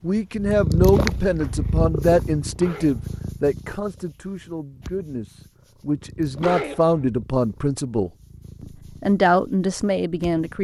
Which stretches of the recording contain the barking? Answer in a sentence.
The barking can be heard from 2.5 to 3.2 s and from 6.3 to 7.0 s.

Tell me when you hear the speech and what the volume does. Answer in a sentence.
The speech can be heard from 0.0 to 8.1 s, getting quieter then louder; and briefly from 9.0 to 10.5 s.